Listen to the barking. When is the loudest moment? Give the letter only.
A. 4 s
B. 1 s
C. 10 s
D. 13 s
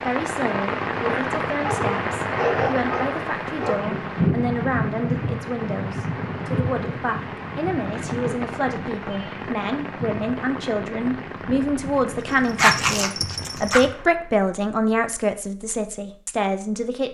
D.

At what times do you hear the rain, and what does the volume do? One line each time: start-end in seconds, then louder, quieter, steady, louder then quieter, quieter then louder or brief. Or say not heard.
0.0-14.3 quieter.